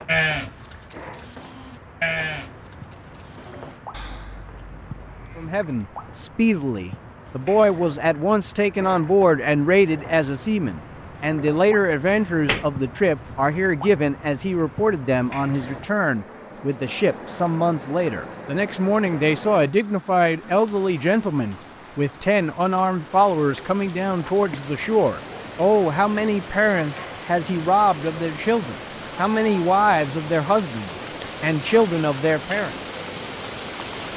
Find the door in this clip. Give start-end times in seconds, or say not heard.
12.1-12.7.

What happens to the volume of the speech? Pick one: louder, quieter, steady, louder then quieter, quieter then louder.
steady.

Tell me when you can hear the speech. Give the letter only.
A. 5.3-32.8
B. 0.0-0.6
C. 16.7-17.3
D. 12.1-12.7
A.